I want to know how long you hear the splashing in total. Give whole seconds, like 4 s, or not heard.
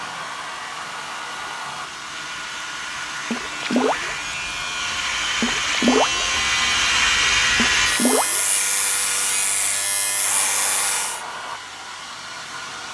3 s.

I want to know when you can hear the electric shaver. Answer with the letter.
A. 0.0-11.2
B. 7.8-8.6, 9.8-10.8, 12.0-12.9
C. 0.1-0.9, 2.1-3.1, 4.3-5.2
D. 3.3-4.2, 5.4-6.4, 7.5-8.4
A.